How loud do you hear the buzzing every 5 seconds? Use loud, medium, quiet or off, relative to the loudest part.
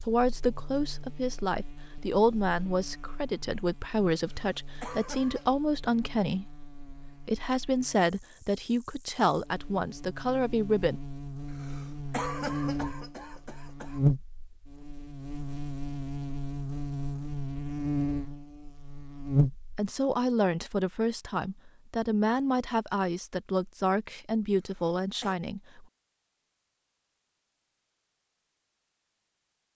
quiet, quiet, loud, loud, off, off.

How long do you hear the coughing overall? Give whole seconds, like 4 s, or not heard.
5 s.